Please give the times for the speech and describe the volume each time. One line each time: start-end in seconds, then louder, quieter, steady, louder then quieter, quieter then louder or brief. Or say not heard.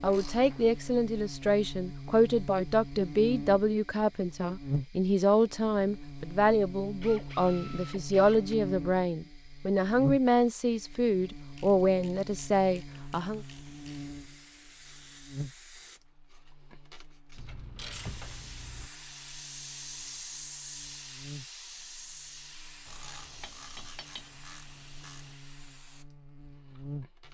0.0-13.4 steady.